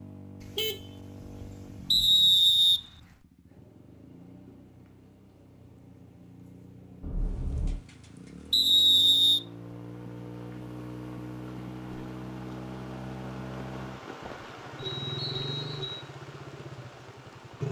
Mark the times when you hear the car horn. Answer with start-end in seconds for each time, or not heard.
0.4-2.0, 7.0-7.8, 14.8-16.1.